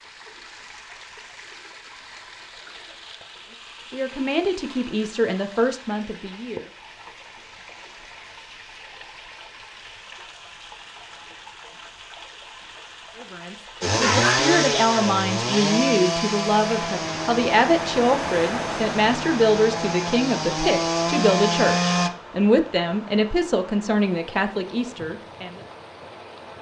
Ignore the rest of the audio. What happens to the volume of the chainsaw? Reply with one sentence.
The volume of the chainsaw goes down, then up.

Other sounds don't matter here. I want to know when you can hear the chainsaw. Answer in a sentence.
The chainsaw can be heard from 13.8 to 22.1 s.